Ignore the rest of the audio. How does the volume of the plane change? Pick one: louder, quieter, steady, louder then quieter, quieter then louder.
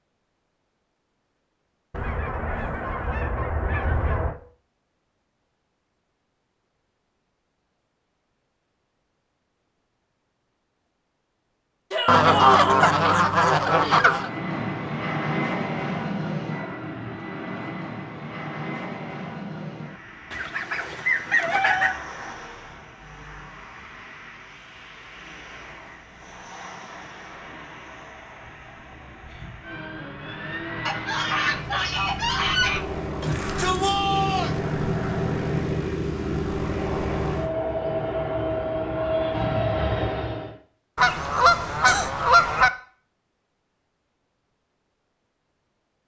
quieter then louder.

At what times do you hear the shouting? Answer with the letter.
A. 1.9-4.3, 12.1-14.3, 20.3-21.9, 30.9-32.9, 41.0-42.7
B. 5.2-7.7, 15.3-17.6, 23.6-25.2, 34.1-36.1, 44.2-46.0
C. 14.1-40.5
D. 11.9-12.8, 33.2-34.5
D.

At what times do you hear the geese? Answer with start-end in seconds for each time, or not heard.
1.9-4.3, 12.1-14.3, 20.3-21.9, 30.9-32.9, 41.0-42.7.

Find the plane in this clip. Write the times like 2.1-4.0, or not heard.
14.1-40.5.